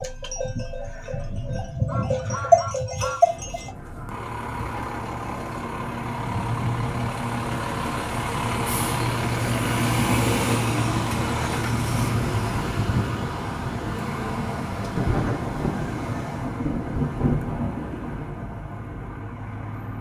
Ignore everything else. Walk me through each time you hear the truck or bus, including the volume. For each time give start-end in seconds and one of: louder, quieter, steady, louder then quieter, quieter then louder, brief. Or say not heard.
0.0-19.9 louder then quieter.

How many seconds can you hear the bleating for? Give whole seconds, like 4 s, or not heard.
4 s.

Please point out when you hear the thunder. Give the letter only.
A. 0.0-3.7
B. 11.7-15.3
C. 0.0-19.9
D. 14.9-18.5
D.